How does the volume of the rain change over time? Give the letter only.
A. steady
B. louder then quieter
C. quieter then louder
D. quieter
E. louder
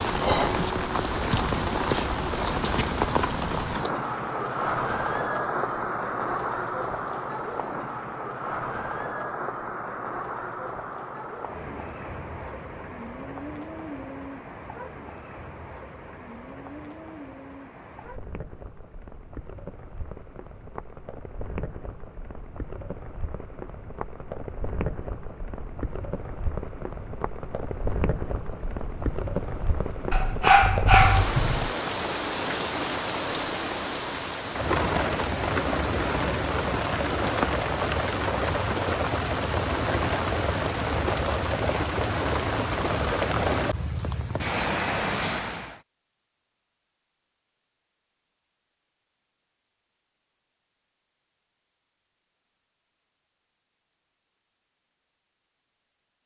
C.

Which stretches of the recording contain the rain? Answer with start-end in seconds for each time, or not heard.
0.0-45.8.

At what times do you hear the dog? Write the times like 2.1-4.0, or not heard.
30.1-31.7.